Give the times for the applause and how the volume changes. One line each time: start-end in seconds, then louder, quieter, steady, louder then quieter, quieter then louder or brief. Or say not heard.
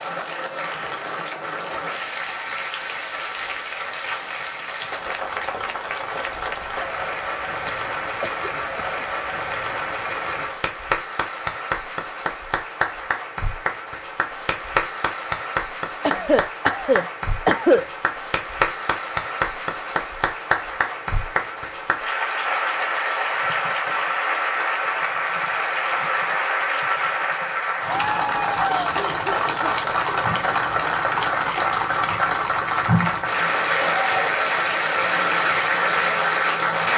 0.0-36.9 louder.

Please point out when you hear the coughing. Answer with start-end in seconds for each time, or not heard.
7.7-9.1, 16.0-17.9, 28.6-29.8.